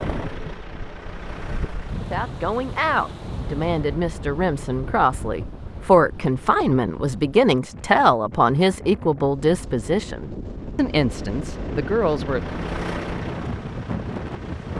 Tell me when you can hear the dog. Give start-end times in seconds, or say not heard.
not heard.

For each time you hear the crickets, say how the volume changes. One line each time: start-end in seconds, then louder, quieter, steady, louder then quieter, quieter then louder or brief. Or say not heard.
not heard.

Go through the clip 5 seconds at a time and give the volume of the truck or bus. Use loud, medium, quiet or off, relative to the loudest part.
loud, off, loud.